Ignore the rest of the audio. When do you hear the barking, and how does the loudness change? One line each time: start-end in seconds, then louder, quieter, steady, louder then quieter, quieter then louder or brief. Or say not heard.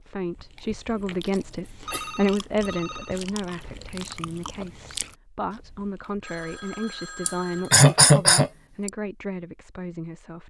not heard.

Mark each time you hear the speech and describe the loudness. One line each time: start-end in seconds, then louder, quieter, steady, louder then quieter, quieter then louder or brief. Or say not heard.
0.0-10.4 quieter.